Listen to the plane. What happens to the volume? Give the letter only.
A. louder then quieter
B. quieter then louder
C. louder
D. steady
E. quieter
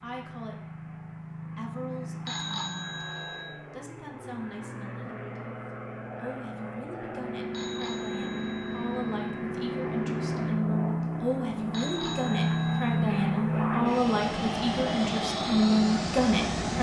C.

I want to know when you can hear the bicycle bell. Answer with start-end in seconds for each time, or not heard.
2.2-3.5, 7.5-9.3, 11.7-13.1.